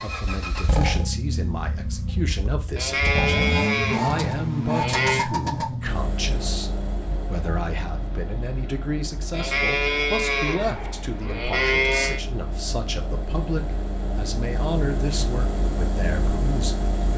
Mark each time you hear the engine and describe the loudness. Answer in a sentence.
The engine can be heard from 0.0 to 17.1 s, getting quieter then louder.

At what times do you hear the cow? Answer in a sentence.
The cow can be heard from 2.8 to 5.2 s and from 9.3 to 12.2 s.